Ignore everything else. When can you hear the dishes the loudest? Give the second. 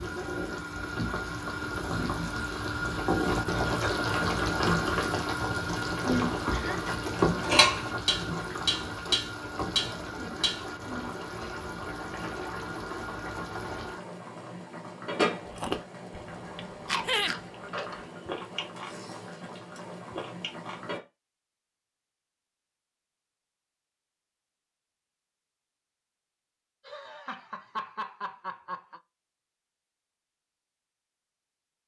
8 s.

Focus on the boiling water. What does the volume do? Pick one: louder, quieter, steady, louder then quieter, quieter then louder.
quieter.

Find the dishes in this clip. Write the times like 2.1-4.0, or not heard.
6.0-6.5, 7.2-11.2.